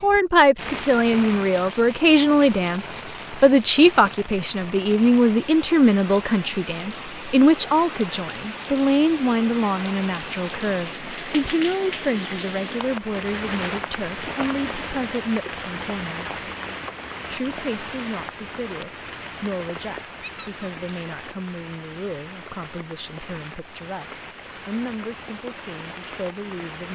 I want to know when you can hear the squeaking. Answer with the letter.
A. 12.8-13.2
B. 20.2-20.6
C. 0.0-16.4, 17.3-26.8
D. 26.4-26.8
B.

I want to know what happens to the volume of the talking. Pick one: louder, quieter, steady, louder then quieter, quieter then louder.
quieter.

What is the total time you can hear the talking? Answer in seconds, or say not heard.
26 s.